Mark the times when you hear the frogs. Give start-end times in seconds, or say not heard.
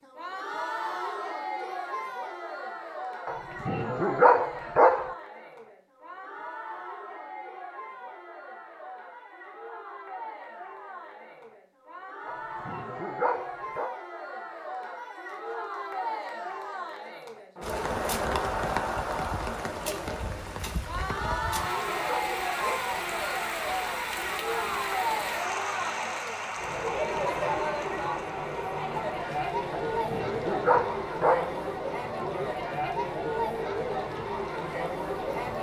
not heard.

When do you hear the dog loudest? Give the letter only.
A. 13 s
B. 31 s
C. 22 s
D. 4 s
D.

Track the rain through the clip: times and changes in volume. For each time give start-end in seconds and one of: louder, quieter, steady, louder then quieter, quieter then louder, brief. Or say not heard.
17.6-35.5 quieter.